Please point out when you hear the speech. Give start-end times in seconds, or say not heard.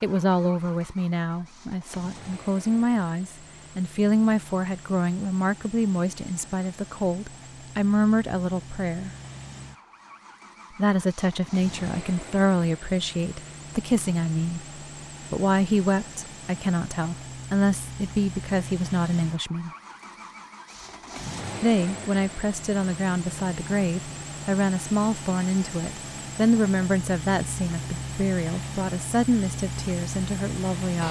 0.0-9.1, 10.8-14.7, 15.3-19.7, 21.6-31.0.